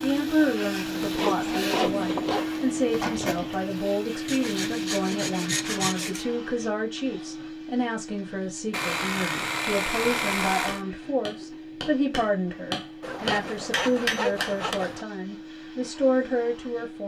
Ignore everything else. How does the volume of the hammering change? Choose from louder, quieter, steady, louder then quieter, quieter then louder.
louder.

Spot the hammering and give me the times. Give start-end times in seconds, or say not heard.
8.9-14.8.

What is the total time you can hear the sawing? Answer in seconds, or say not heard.
8 s.